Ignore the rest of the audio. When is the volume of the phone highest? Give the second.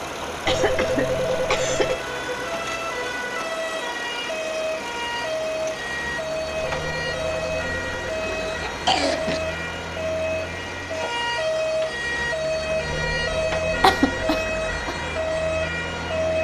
1 s.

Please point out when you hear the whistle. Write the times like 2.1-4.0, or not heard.
not heard.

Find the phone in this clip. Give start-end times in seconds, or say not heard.
0.5-1.9, 6.8-8.1, 12.8-14.4.